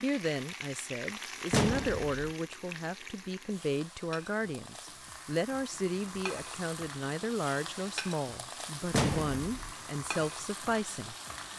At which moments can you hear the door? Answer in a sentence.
You can hear the door from 1.5 to 2.2 s and from 8.9 to 9.8 s.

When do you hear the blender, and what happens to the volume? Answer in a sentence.
You can't hear the blender here.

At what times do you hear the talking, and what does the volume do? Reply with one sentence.
The talking can be heard from 0.0 to 11.2 s, at a steady volume.